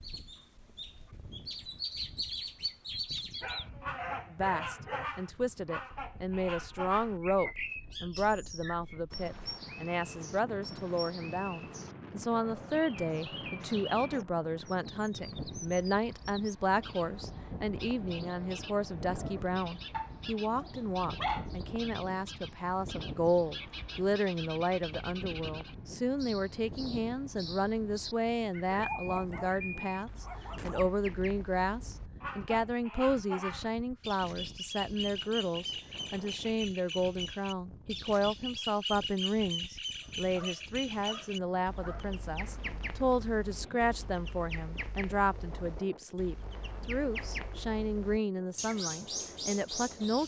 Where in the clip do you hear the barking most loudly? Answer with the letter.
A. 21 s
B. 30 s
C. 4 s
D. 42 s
A.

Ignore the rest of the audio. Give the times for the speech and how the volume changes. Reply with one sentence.
You can hear the speech from 4.3 to 50.2 s, at a steady volume.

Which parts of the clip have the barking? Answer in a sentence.
You can hear the barking from 3.4 to 5.1 s, from 19.9 to 21.5 s, from 28.7 to 30.8 s and from 40.0 to 42.0 s.